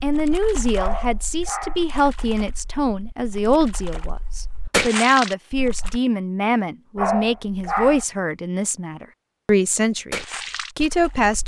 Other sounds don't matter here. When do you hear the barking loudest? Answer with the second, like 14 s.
7 s.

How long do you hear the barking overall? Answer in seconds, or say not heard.
2 s.